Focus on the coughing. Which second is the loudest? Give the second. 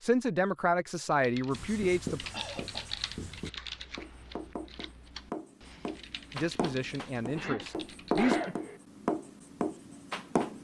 8 s.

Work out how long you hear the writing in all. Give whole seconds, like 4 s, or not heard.
9 s.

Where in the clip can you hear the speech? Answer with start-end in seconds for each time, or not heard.
0.0-2.2, 6.3-8.4.